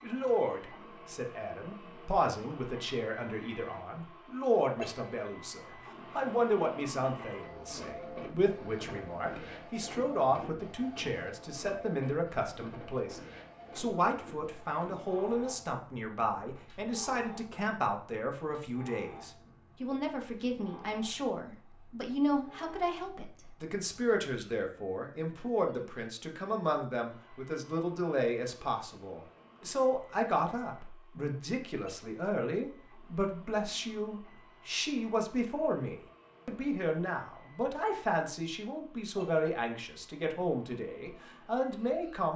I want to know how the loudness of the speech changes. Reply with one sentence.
The loudness of the speech stays about the same.